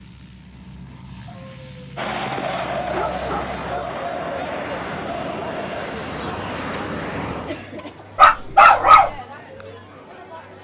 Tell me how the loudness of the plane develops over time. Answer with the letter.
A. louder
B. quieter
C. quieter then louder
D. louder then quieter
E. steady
A.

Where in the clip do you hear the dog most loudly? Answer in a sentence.
The loudest moment of the dog is at 9 seconds.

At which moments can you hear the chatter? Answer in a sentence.
The chatter can be heard from 1.9 to 10.6 s.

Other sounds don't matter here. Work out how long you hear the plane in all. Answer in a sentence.
The plane can be heard for 8 seconds in total.